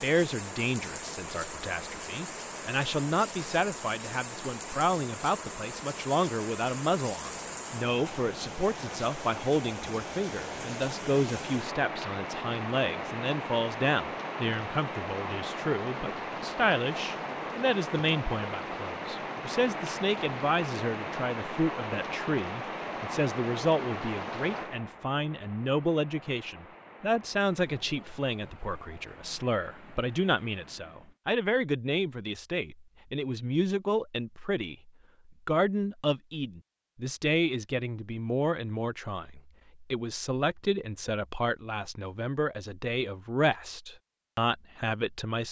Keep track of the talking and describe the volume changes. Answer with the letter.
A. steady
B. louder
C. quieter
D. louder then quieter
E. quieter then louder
A.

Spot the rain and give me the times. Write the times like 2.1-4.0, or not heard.
0.0-31.1.